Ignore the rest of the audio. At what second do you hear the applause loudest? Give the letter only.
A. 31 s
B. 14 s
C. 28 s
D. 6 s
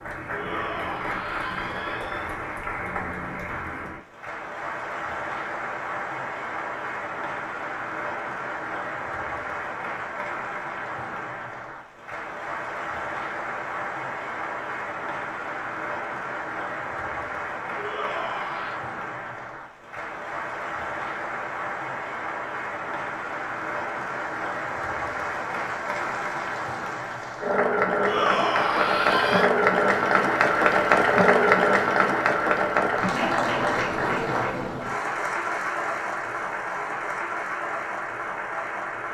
A.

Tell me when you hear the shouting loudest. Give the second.
28 s.